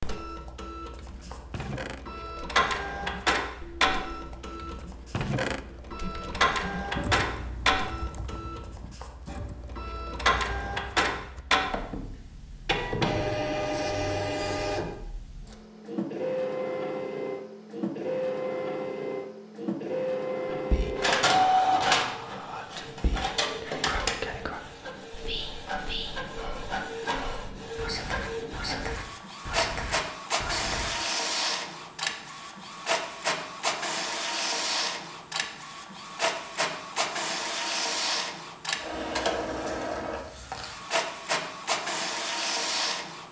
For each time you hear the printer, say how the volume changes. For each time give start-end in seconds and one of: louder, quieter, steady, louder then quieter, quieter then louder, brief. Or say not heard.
0.0-43.2 steady.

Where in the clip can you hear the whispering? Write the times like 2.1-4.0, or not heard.
20.5-30.9.